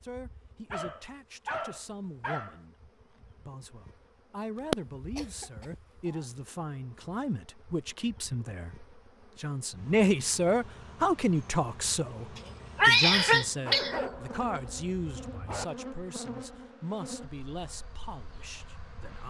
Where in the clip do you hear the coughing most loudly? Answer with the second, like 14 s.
13 s.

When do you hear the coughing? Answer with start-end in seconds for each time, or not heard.
4.7-5.5, 12.3-14.1.